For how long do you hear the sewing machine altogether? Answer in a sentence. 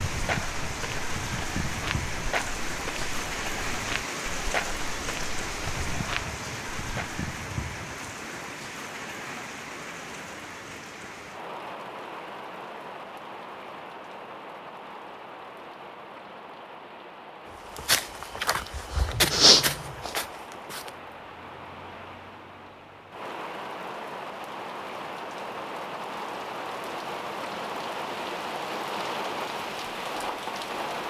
You can't hear the sewing machine here.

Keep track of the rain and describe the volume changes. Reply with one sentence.
The loudness of the rain goes down, then up.